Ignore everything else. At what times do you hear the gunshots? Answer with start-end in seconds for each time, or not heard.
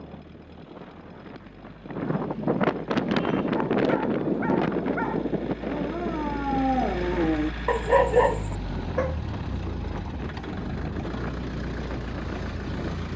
not heard.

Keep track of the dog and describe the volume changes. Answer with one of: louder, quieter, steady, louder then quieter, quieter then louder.
louder.